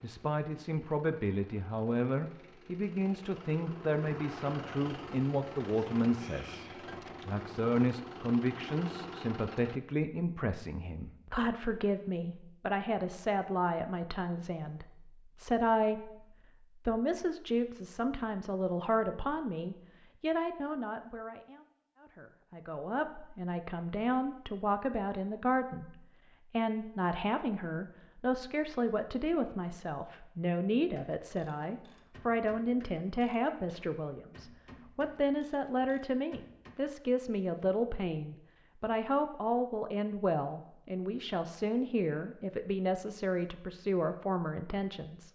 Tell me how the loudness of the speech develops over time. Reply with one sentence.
The volume of the speech stays about the same.